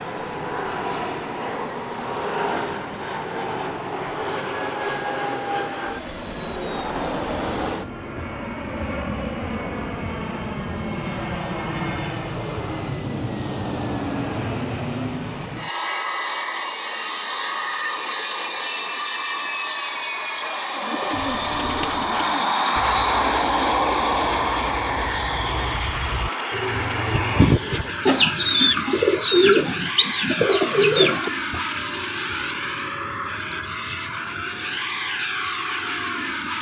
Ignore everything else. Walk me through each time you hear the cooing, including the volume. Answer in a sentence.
The cooing can be heard from 20.8 to 31.6 s, getting quieter then louder.